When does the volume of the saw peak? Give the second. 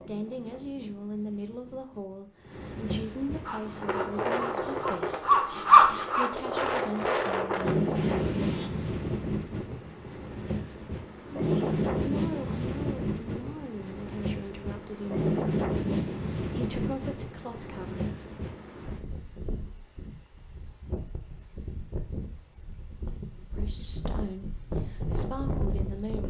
6 s.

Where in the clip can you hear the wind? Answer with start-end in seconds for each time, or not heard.
0.0-26.2.